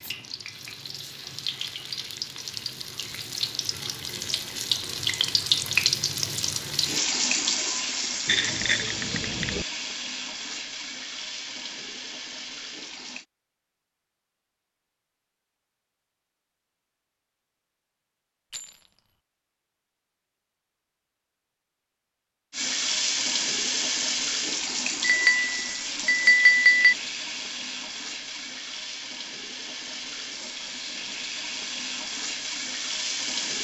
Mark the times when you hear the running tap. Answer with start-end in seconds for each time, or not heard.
0.0-13.2, 22.5-33.5.